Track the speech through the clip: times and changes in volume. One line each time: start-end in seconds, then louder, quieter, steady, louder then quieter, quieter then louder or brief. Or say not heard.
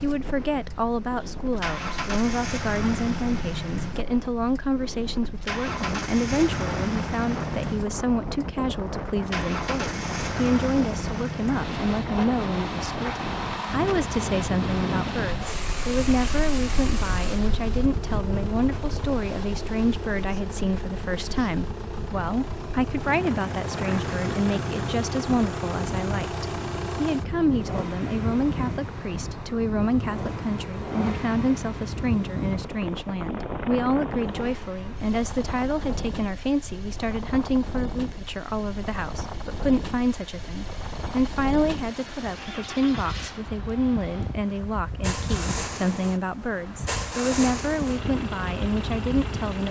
0.0-49.6 steady.